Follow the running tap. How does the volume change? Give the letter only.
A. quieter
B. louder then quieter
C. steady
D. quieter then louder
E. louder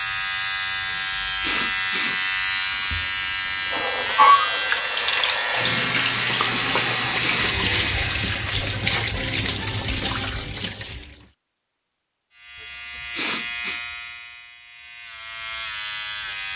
A.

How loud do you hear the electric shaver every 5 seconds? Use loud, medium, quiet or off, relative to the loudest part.
loud, loud, medium, medium.